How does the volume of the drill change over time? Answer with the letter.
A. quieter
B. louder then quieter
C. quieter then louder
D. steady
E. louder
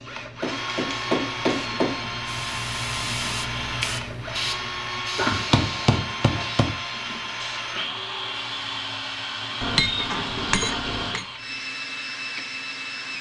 D.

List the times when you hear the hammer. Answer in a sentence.
You can hear the hammer from 0.4 to 2.0 s, from 5.2 to 6.8 s and from 9.6 to 11.2 s.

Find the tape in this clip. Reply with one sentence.
The tape can't be heard in this clip.